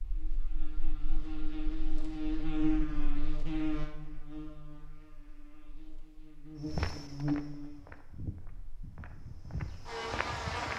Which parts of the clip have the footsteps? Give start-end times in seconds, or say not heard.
6.7-10.7.